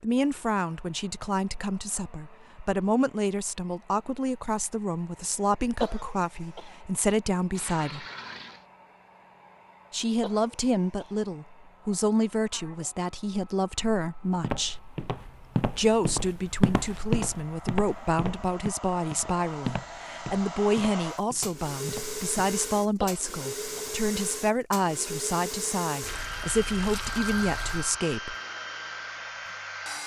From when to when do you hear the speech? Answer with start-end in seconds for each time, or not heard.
0.0-8.1, 9.9-14.8, 15.8-28.4.